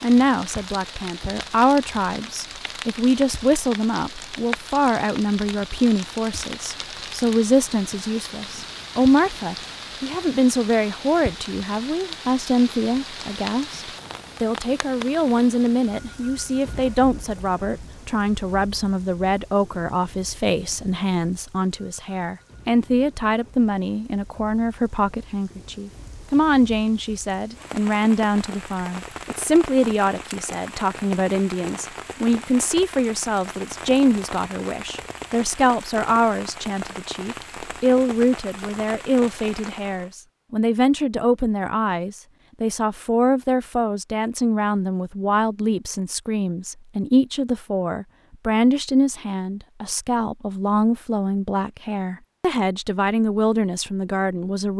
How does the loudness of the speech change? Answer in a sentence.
The volume of the speech stays about the same.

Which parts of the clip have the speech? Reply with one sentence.
You can hear the speech from 0.0 to 54.7 s.